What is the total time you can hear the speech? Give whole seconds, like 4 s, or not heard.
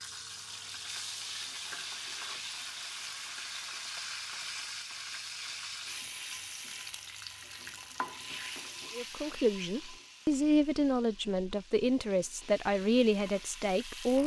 5 s.